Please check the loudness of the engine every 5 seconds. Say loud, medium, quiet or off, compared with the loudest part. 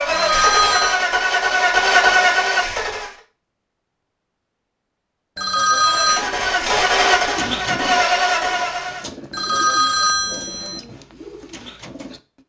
loud, loud, off.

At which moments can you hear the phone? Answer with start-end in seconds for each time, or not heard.
0.1-1.0, 5.3-6.2, 9.3-10.8.